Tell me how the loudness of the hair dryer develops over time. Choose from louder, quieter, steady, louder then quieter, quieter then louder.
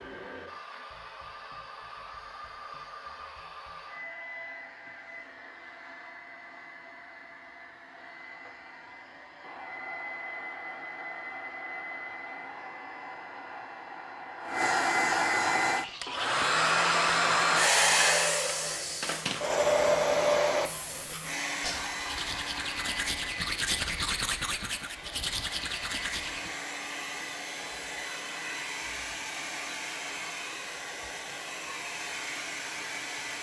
louder then quieter.